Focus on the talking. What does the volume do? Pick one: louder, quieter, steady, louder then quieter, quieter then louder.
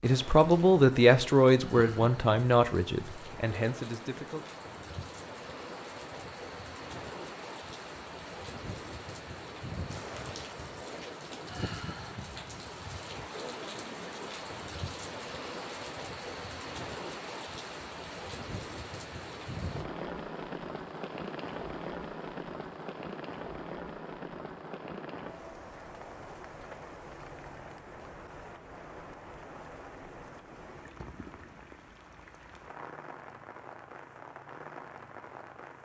quieter.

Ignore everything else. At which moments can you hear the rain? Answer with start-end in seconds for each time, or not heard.
0.0-35.8.